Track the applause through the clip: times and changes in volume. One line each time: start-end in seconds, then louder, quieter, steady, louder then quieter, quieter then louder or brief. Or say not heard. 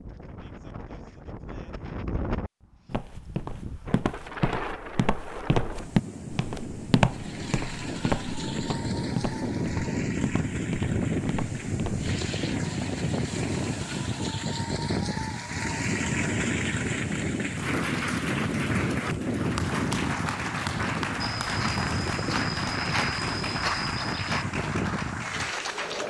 7.0-26.0 louder.